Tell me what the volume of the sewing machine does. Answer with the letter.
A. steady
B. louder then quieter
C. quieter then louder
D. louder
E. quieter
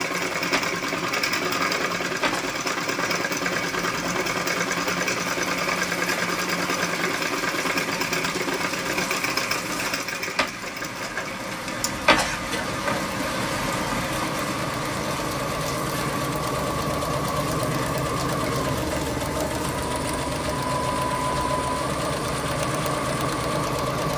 C.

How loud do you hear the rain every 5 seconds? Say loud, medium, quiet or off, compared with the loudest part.
medium, medium, loud, medium, medium.